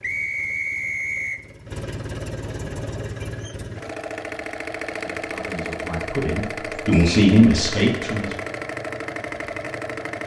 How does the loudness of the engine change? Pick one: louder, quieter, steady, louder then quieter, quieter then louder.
louder.